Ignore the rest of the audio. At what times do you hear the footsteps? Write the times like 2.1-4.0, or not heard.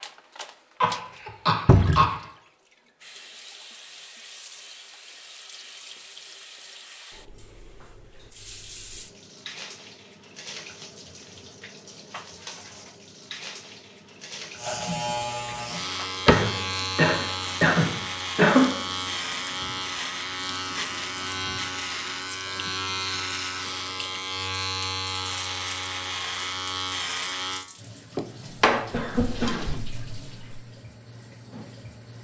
not heard.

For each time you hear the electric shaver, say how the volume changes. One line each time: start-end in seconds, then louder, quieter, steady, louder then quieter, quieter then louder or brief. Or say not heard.
14.6-27.6 steady.